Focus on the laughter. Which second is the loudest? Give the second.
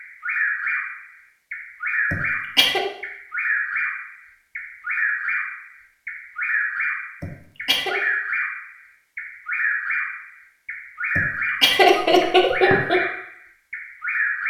12 s.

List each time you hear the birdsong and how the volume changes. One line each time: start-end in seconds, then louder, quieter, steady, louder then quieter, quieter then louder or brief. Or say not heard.
0.0-14.4 steady.